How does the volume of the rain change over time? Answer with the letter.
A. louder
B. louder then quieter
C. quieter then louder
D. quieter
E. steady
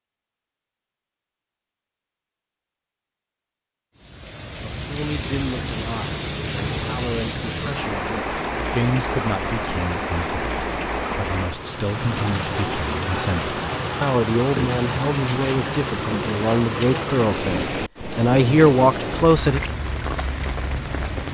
E.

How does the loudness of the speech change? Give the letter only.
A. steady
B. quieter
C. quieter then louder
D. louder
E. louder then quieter
D.